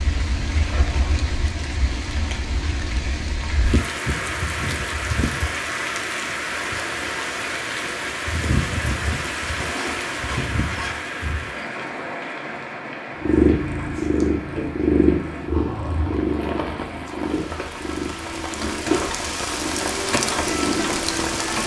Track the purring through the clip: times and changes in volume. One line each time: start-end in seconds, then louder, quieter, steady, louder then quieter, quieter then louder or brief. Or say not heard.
13.2-21.6 quieter.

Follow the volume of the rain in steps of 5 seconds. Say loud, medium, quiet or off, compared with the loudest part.
medium, loud, medium, medium, loud.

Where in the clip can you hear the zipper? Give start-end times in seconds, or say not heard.
0.3-1.3, 9.5-11.0, 15.4-16.2.